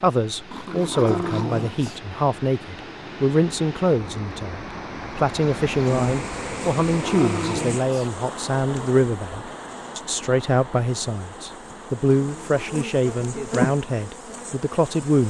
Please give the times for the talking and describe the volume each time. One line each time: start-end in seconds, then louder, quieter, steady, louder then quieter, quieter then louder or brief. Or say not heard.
0.0-15.2 steady.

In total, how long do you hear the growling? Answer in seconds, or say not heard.
3 s.